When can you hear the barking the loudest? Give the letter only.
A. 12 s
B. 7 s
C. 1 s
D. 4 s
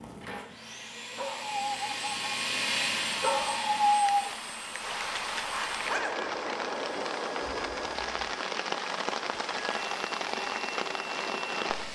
D.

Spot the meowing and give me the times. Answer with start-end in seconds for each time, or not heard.
not heard.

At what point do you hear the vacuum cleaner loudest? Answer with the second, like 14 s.
3 s.